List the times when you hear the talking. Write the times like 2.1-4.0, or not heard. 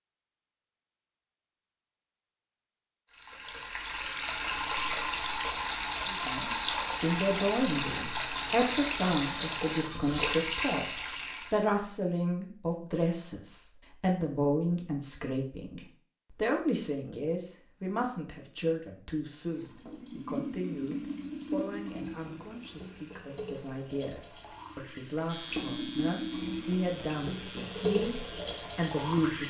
6.0-28.1, 28.8-29.4.